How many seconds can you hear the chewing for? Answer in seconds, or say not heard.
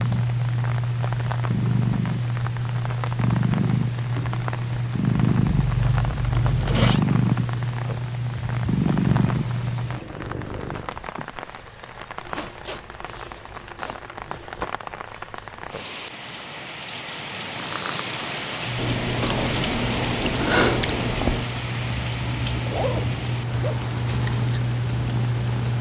3 s.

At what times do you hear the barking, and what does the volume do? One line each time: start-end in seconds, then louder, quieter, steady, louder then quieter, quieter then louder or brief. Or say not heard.
not heard.